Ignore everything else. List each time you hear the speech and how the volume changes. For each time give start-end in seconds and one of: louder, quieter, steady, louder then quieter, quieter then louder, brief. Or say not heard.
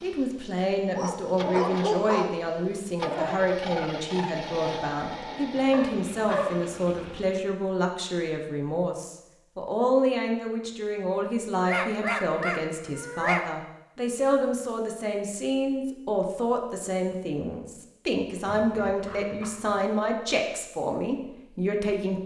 0.0-22.2 steady.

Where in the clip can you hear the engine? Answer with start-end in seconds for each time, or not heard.
0.0-7.5.